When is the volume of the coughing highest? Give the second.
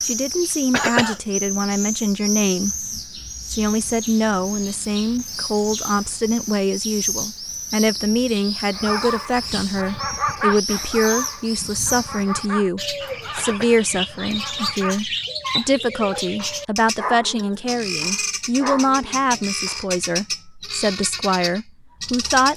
1 s.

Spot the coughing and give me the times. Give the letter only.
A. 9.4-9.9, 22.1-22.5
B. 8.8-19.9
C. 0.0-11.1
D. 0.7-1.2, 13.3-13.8
D.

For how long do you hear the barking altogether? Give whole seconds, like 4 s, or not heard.
11 s.